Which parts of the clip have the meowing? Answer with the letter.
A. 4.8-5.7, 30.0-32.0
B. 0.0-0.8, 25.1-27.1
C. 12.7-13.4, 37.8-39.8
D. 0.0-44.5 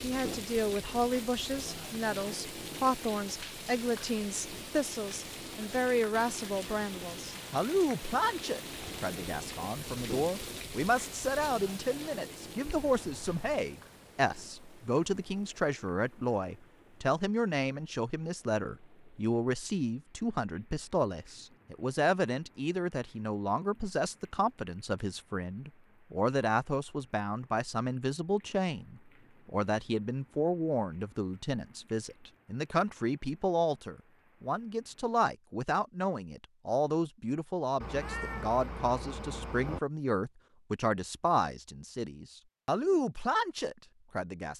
C.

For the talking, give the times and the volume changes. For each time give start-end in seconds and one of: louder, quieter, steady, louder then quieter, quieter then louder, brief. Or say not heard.
0.0-44.5 steady.